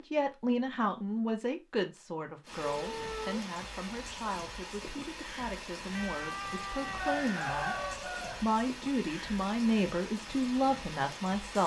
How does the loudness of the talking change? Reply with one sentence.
The volume of the talking goes down, then up.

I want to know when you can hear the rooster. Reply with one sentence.
You can hear the rooster from 7.0 to 8.4 s.